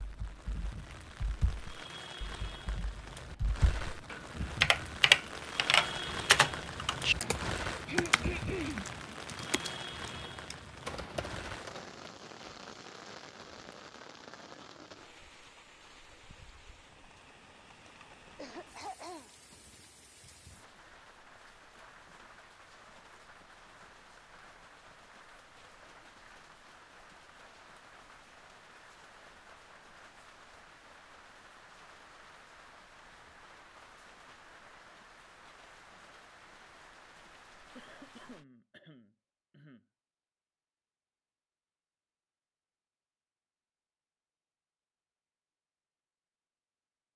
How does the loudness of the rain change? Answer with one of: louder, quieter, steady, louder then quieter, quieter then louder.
quieter.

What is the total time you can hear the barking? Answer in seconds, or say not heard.
not heard.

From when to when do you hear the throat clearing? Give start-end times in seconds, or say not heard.
7.8-8.8, 18.4-19.3, 37.8-39.9.